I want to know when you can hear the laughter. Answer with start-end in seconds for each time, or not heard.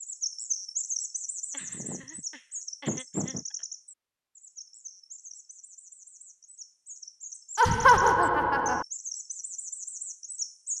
1.5-3.5, 7.5-8.8.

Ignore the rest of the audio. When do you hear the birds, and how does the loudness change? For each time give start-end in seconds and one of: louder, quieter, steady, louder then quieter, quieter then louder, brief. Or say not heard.
0.0-10.7 quieter then louder.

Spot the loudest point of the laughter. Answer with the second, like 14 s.
8 s.